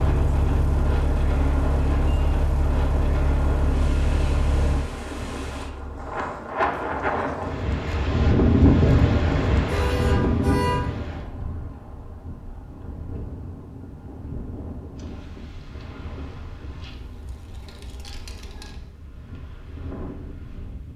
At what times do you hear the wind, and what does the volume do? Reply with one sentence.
The wind can be heard from 0.0 to 20.9 s, getting louder then quieter.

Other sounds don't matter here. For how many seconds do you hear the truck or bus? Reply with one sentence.
You can hear the truck or bus for 6 seconds altogether.